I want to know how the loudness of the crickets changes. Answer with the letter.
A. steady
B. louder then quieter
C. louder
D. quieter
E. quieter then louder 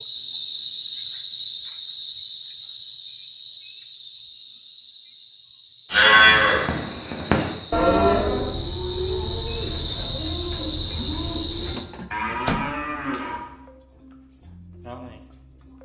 E.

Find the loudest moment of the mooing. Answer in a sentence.
The loudest moment of the mooing is at 6 seconds.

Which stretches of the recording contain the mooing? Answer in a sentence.
The mooing can be heard from 5.9 to 13.4 s.